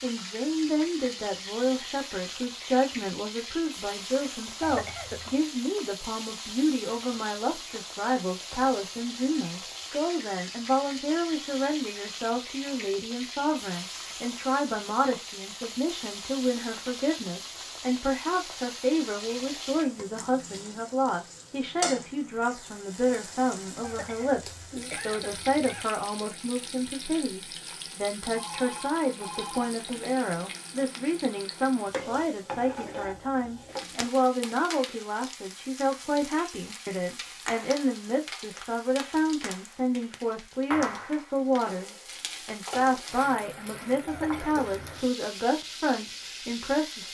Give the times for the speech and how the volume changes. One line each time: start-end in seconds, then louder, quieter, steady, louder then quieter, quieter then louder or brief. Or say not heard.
0.0-47.0 steady.